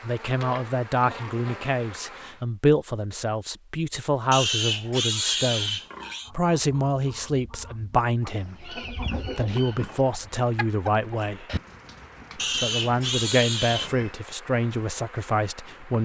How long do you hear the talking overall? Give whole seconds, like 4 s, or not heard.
15 s.